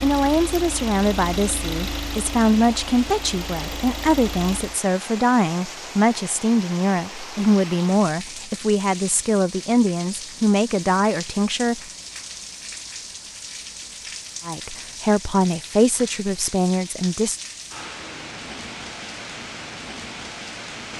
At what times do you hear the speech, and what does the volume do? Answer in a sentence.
The speech can be heard from 0.0 to 11.8 s, at a steady volume; and briefly from 14.4 to 17.4 s.